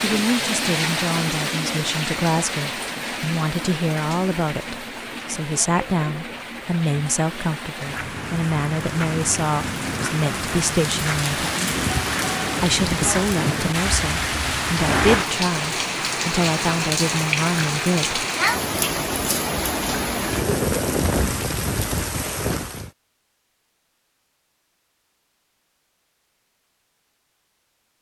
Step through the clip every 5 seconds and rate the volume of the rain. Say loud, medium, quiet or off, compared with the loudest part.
loud, medium, loud, loud, loud, off.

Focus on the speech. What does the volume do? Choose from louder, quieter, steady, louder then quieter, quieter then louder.
steady.